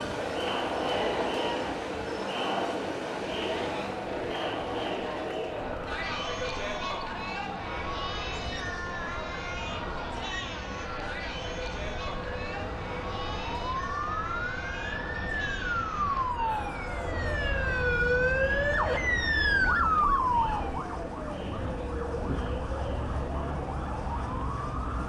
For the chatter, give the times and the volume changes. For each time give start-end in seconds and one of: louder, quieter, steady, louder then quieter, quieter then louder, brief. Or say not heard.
0.0-25.0 quieter.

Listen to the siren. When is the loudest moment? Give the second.
20 s.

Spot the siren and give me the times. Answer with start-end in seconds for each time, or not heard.
0.0-25.0.